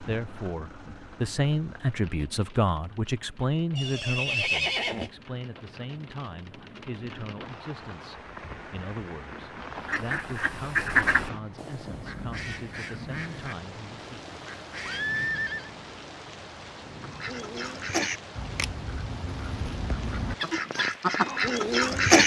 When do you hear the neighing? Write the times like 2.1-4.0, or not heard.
3.8-5.1, 14.8-15.7.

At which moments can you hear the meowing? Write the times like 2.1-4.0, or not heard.
not heard.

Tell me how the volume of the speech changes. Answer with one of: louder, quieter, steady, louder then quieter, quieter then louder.
quieter.